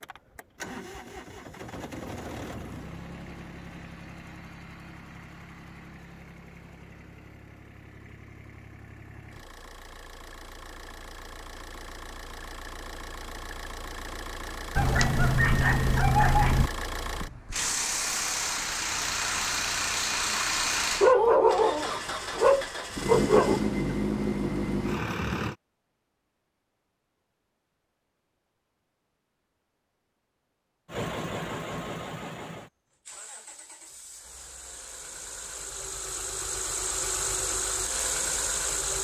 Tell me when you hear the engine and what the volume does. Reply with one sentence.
You can hear the engine from 0.0 to 25.6 s, getting quieter then louder; and from 30.9 to 38.9 s, getting quieter then louder.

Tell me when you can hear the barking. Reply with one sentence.
You can hear the barking from 14.8 to 16.7 s and from 21.0 to 23.6 s.